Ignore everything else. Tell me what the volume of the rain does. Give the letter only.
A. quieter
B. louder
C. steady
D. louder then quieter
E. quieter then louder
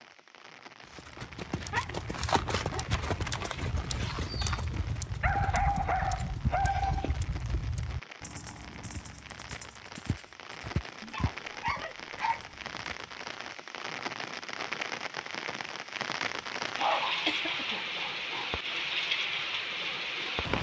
B.